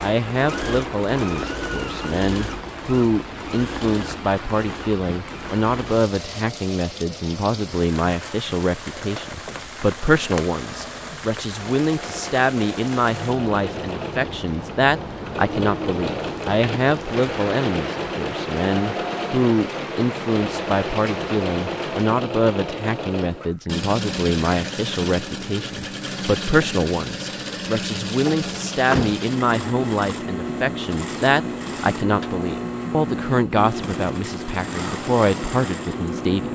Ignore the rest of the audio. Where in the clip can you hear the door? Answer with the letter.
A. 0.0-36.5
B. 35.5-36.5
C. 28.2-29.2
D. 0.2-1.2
C.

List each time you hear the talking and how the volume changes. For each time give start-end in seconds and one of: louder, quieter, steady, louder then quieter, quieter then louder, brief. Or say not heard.
0.0-36.5 steady.